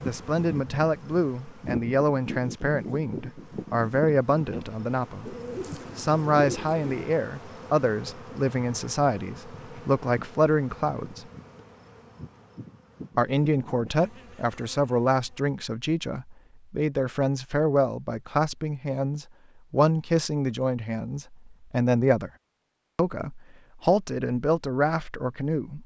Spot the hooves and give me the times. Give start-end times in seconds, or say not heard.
not heard.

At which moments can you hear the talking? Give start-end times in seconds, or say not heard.
0.0-5.3, 6.0-11.2, 13.2-22.3, 22.9-25.8.